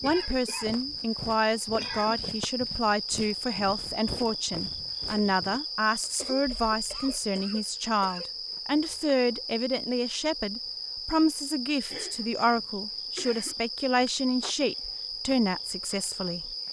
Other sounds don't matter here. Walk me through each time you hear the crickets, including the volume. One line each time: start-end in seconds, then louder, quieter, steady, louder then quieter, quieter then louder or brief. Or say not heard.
0.0-16.6 steady.